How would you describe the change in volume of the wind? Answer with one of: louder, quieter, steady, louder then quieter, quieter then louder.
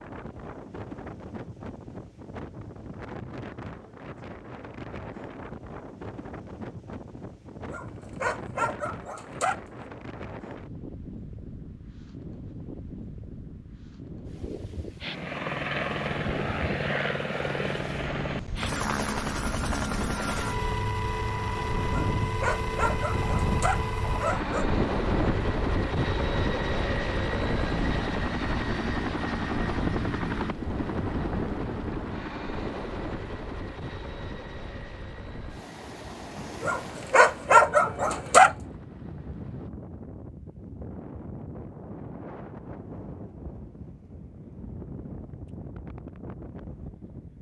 louder then quieter.